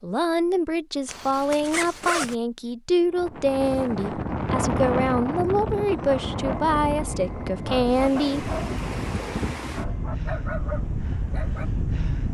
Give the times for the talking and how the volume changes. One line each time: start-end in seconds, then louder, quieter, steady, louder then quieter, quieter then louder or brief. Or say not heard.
0.0-8.5 steady.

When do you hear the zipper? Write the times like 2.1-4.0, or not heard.
1.1-2.4.